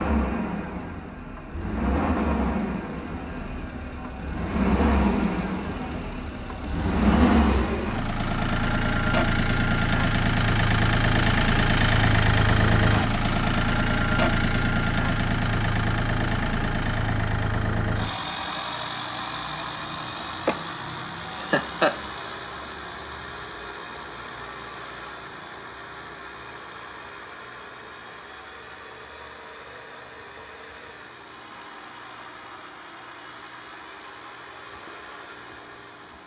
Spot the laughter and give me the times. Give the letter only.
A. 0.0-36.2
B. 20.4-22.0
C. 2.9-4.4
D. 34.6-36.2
B.